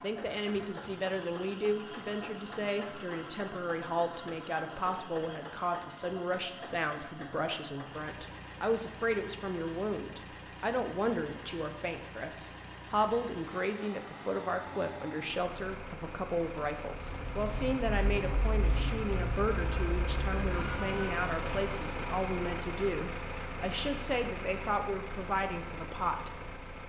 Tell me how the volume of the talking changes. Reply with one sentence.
The volume of the talking stays about the same.